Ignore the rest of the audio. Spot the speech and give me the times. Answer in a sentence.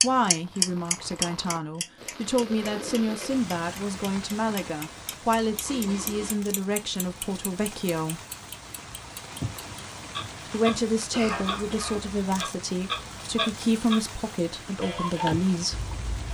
You can hear the speech from 0.0 to 8.2 s and from 10.5 to 15.8 s.